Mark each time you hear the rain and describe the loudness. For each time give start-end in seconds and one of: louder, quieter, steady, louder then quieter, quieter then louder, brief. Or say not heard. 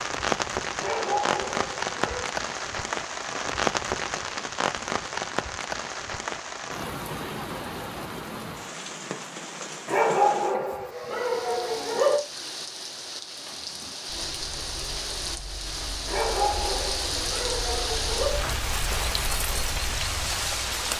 0.0-20.9 quieter then louder.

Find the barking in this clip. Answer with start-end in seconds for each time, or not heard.
0.8-2.3, 9.8-12.2, 16.1-18.4.